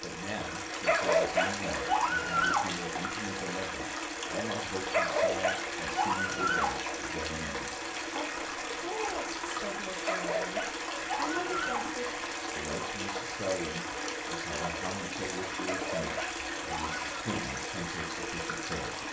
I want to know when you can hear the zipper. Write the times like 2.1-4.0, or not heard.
not heard.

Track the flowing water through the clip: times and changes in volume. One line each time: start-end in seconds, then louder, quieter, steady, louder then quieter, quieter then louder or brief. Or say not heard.
0.0-19.0 steady.